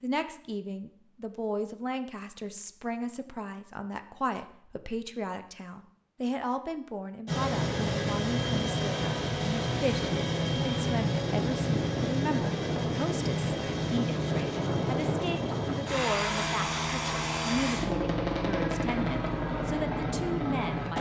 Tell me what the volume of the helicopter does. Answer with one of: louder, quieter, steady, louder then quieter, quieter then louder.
steady.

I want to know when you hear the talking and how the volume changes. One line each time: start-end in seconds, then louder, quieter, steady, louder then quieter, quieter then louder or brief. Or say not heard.
0.0-20.9 steady.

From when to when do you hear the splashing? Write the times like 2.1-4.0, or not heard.
not heard.